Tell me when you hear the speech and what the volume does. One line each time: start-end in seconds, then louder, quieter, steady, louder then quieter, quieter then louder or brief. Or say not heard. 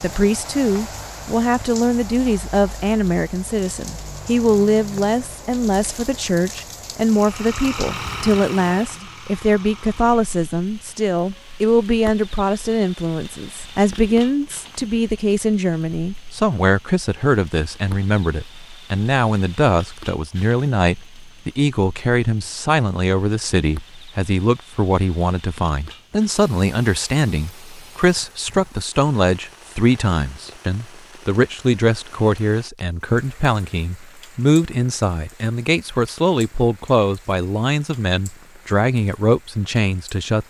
0.0-40.4 steady.